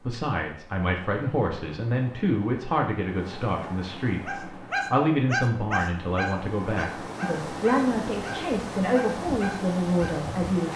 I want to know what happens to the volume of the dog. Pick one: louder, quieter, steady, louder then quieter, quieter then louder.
quieter.